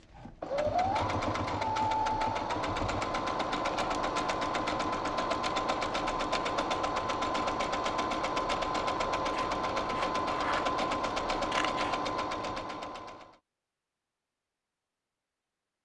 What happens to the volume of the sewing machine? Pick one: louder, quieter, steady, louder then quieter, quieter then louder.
steady.